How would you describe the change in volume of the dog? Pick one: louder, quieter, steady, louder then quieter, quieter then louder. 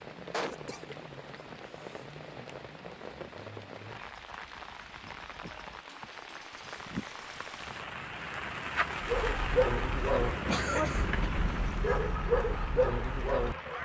quieter then louder.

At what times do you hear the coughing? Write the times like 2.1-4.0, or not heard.
0.3-2.0, 10.3-11.2.